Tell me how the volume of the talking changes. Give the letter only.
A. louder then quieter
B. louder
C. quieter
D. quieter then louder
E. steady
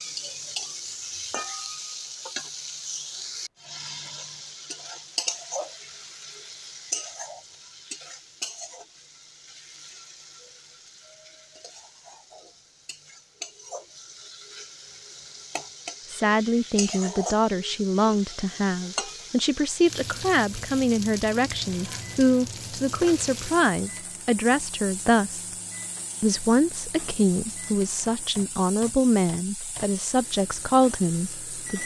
E.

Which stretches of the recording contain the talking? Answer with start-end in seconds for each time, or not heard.
16.1-25.5, 26.2-31.8.